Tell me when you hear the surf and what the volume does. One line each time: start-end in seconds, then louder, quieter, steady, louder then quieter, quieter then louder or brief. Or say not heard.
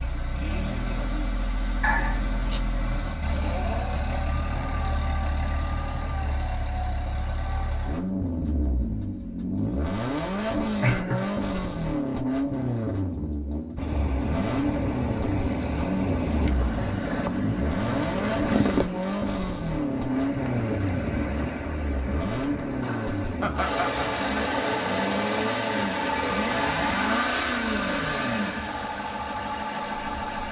13.8-30.4 quieter.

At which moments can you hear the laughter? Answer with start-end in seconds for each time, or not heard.
1.8-2.6, 10.8-11.4, 23.4-24.1.